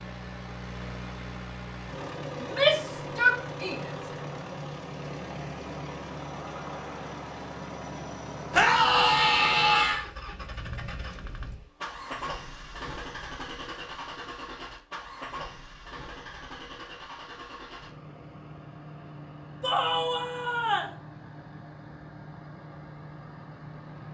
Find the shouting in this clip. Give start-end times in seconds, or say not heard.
2.4-3.9, 8.5-10.1, 19.6-20.9.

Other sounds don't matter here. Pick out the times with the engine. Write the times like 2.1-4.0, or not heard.
0.0-24.1.